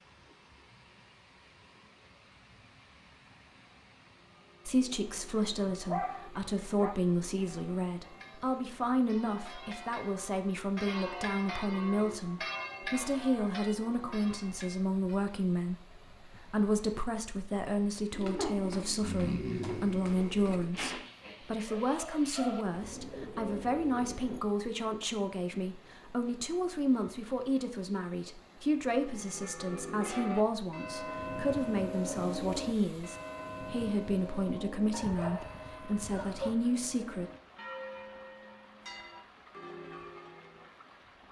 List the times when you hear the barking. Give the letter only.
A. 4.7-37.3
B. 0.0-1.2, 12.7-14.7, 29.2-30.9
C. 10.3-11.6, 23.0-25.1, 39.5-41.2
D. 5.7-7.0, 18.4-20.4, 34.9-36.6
D.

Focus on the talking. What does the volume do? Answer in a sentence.
The volume of the talking stays about the same.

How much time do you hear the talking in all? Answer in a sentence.
You can hear the talking for 33 seconds altogether.